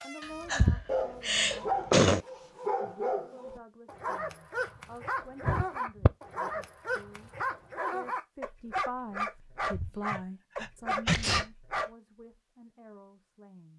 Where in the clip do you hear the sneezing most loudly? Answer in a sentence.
The loudest moment of the sneezing is at 2 seconds.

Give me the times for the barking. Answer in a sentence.
You can hear the barking from 0.0 to 11.9 s.